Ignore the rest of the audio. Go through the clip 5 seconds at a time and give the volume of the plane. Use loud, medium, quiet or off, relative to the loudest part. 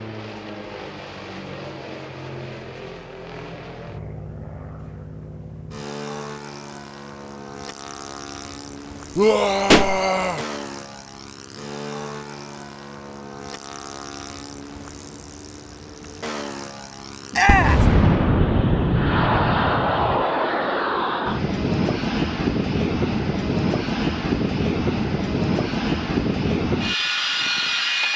quiet, quiet, quiet, medium, loud, loud.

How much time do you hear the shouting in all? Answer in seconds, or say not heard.
2 s.